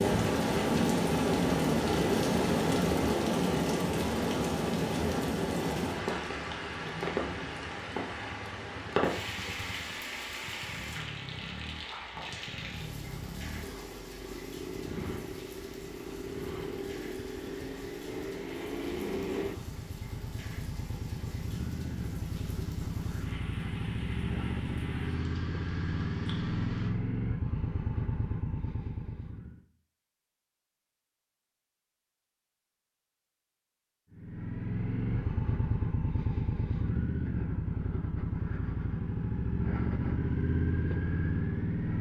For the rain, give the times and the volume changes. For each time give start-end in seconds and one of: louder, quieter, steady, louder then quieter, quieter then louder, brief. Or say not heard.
0.0-26.9 quieter.